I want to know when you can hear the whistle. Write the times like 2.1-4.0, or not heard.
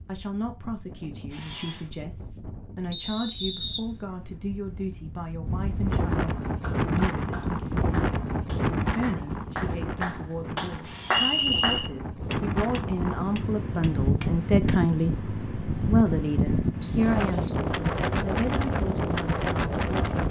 2.9-4.3, 11.1-11.9, 16.8-17.6.